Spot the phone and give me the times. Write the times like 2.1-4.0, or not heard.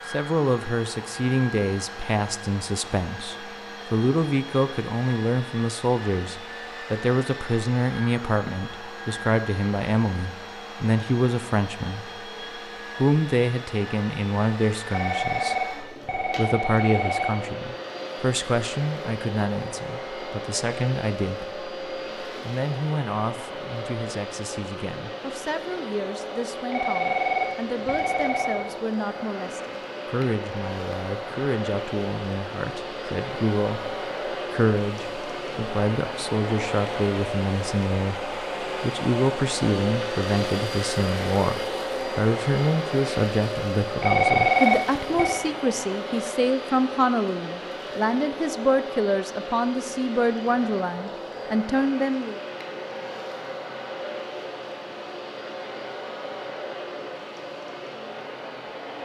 14.9-17.4, 26.7-28.7, 44.0-45.5.